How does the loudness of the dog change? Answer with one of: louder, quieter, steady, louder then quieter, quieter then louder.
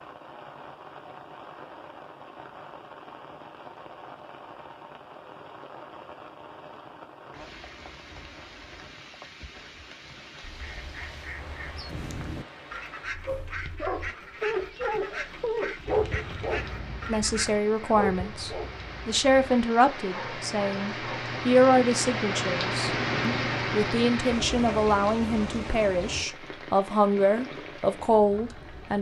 quieter.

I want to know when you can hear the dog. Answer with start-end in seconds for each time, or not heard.
13.2-20.9.